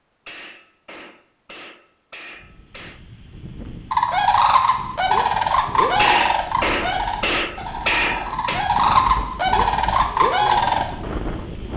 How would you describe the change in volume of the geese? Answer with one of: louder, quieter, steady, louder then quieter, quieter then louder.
quieter then louder.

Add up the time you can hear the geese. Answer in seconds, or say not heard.
7 s.